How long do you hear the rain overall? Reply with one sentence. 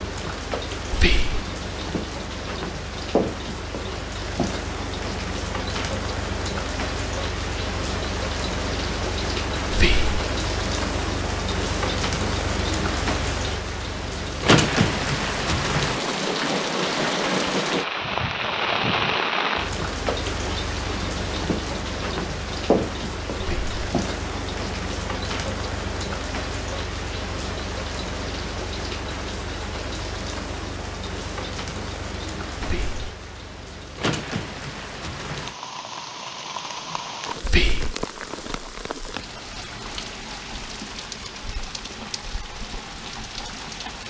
You can hear the rain for 44 seconds altogether.